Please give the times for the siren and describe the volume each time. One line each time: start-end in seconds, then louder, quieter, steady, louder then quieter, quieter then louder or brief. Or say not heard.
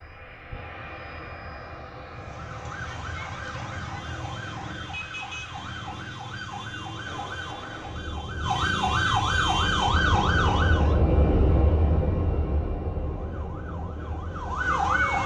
2.1-11.0 louder
13.0-15.2 brief.